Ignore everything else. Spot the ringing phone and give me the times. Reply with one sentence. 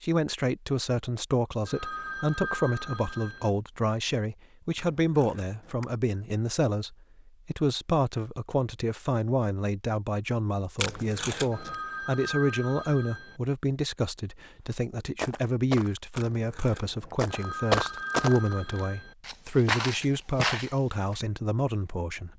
You can hear the ringing phone from 1.6 to 3.5 s, from 11.5 to 13.4 s and from 17.2 to 19.1 s.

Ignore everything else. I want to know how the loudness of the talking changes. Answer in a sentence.
The volume of the talking stays about the same.